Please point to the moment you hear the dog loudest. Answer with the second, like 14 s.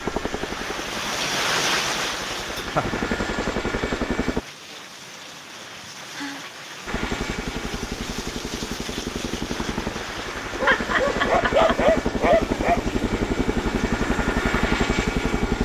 12 s.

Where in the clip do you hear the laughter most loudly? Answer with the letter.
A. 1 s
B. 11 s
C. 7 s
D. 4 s
B.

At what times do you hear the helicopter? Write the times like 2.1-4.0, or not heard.
0.0-4.4, 6.8-15.6.